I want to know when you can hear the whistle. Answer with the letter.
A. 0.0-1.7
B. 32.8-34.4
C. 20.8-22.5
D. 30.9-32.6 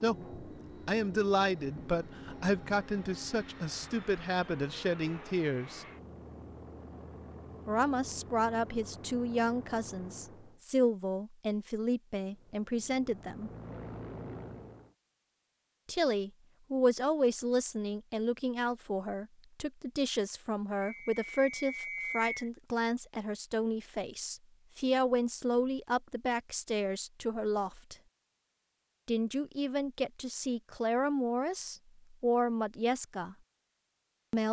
C.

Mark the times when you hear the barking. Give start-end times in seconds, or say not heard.
not heard.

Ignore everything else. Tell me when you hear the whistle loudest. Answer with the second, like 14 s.
22 s.